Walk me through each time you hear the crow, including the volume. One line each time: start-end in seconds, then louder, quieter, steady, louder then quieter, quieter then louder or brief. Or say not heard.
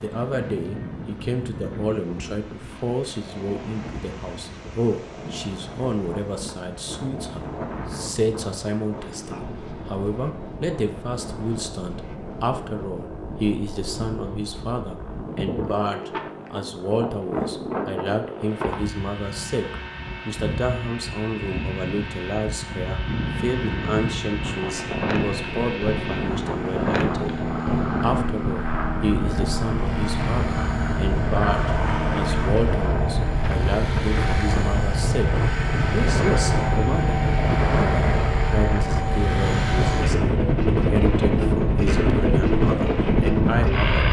not heard.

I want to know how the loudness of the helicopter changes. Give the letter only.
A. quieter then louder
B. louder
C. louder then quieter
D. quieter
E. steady
B.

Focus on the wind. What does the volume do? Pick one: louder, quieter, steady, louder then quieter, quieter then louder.
louder.